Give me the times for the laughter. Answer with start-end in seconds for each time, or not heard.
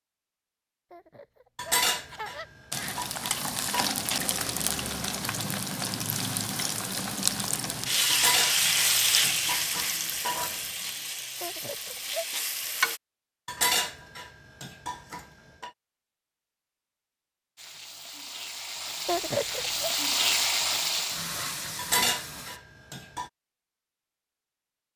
0.9-3.0, 11.4-12.2, 19.1-19.9.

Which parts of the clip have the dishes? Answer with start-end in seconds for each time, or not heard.
1.6-3.9, 8.1-10.6, 13.4-15.7, 21.8-23.3.